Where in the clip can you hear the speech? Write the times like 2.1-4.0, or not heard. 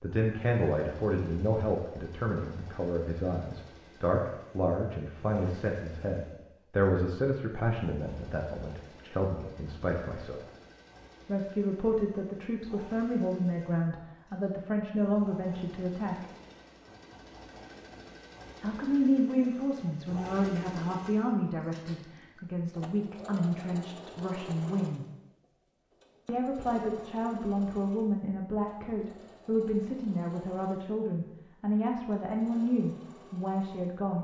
0.0-10.4, 11.2-16.2, 18.6-25.1, 26.2-34.1.